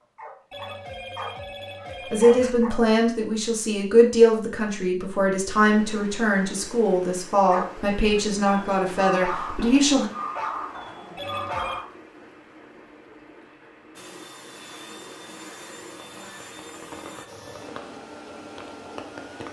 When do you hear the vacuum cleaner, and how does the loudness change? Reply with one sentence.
The vacuum cleaner can be heard from 13.9 to 19.4 s, at a steady volume.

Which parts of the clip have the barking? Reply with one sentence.
The barking can be heard from 0.0 to 2.9 s and from 7.5 to 11.8 s.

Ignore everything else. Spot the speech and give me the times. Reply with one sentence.
You can hear the speech from 2.1 to 10.1 s.